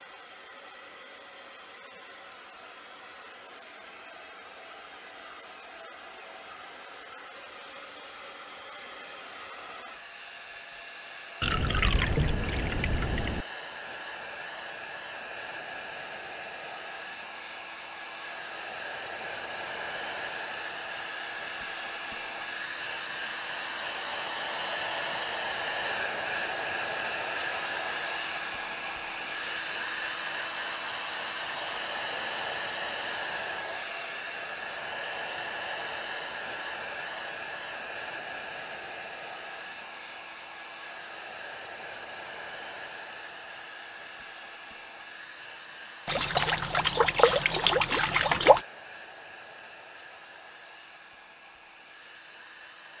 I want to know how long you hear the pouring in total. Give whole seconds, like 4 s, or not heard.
5 s.